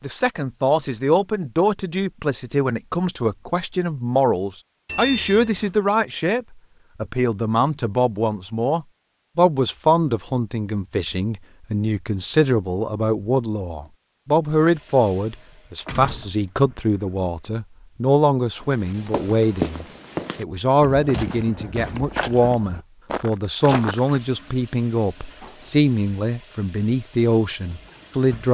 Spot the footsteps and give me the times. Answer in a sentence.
The footsteps can be heard from 18.6 to 24.2 s.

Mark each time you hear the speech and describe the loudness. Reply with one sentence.
The speech can be heard from 0.0 to 28.4 s, at a steady volume.